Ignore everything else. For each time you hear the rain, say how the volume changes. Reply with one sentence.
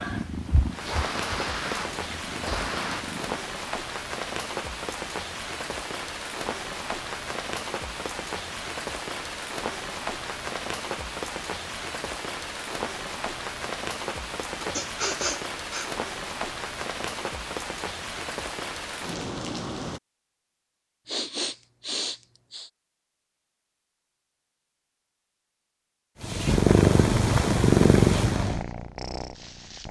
You can hear the rain from 0.1 to 20.0 s, at a steady volume.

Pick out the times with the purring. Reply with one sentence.
The purring can be heard from 0.0 to 3.5 s and from 26.2 to 29.8 s.